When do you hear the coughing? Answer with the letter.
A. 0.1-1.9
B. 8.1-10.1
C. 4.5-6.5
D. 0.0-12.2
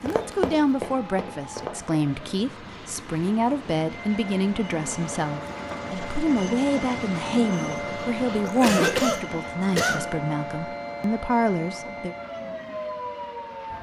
B.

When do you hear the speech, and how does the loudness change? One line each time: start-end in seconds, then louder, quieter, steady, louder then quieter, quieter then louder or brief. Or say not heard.
0.0-12.2 steady.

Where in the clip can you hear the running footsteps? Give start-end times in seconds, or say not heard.
0.1-1.9.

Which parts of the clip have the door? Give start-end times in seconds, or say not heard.
not heard.